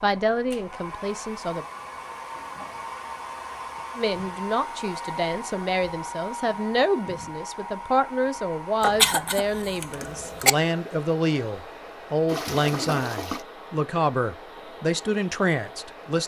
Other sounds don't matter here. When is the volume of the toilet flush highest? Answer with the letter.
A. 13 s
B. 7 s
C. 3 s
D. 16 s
A.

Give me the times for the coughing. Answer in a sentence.
You can hear the coughing from 8.8 to 10.5 s.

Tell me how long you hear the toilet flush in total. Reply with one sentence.
You can hear the toilet flush for 2 seconds altogether.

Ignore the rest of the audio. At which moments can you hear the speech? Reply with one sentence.
You can hear the speech from 0.0 to 1.6 s and from 4.0 to 16.2 s.